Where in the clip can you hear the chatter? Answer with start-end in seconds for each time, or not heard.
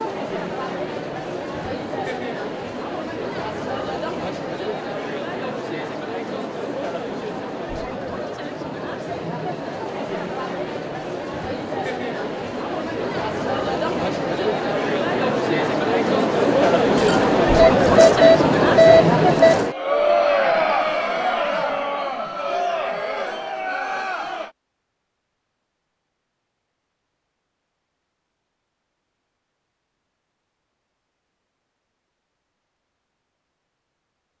0.0-24.5.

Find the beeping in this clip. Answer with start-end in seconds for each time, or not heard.
16.9-19.6.